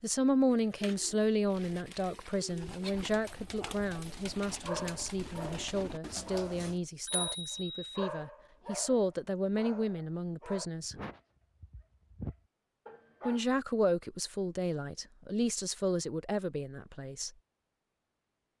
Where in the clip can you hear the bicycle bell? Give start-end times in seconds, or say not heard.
7.0-8.0.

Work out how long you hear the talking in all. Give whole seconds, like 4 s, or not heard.
15 s.